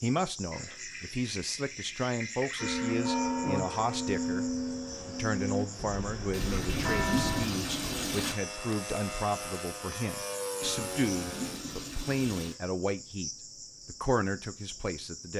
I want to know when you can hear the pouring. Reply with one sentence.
You can hear the pouring from 0.5 to 3.0 s, from 6.3 to 8.3 s and from 10.6 to 12.6 s.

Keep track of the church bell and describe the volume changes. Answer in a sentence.
The loudness of the church bell goes down, then up.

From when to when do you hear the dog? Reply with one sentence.
You can't hear the dog here.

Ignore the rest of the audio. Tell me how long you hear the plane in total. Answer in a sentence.
The plane can be heard for 9 seconds in total.